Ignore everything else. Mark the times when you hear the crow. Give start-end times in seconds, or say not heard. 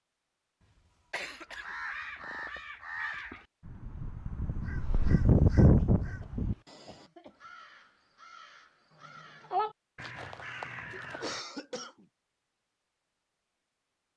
1.2-11.4.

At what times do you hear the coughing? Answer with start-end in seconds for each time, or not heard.
1.1-2.6, 5.8-7.3, 10.9-12.1.